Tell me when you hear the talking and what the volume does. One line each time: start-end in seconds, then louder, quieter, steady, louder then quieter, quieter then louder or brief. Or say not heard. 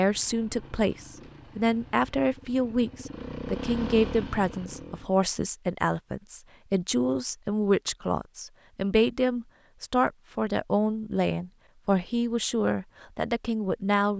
0.0-14.1 steady.